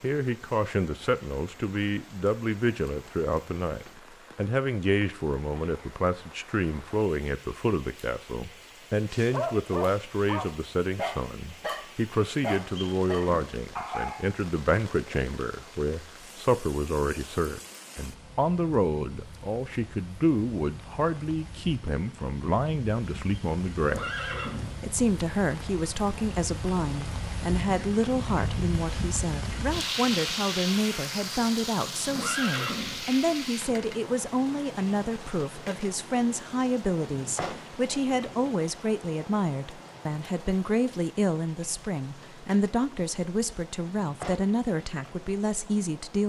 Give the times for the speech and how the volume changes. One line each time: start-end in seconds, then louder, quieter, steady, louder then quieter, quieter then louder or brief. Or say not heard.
0.0-46.2 steady.